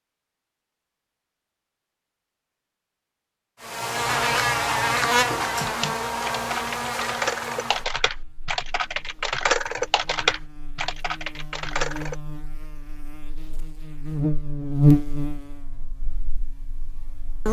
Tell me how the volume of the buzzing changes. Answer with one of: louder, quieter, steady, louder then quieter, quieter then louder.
quieter then louder.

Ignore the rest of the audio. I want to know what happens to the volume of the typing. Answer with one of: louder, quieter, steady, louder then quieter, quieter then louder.
louder then quieter.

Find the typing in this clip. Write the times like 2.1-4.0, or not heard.
5.5-12.2.